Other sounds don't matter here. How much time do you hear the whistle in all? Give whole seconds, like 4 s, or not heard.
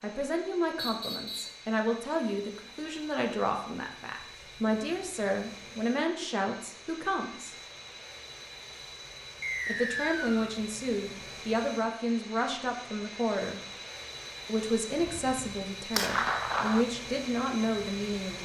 2 s.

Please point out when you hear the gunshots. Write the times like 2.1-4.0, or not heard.
14.9-16.9.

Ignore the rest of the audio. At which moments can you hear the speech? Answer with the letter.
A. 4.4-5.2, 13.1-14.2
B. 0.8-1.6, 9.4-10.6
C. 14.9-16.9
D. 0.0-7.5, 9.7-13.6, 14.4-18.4
D.